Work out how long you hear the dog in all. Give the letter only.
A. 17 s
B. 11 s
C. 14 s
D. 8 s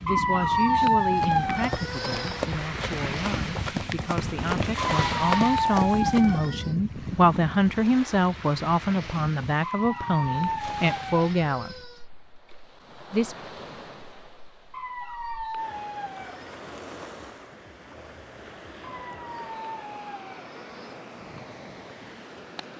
B.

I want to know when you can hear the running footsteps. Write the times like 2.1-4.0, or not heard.
1.0-6.5.